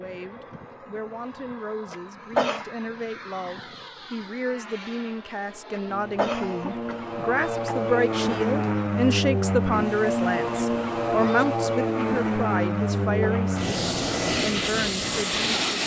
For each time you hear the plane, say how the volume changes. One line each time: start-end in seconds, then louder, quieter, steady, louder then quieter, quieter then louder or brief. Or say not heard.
0.0-15.8 louder.